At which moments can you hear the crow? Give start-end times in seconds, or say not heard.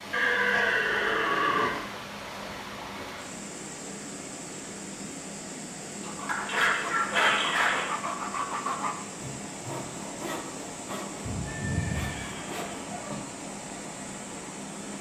not heard.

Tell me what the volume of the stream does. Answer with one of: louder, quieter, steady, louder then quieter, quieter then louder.
steady.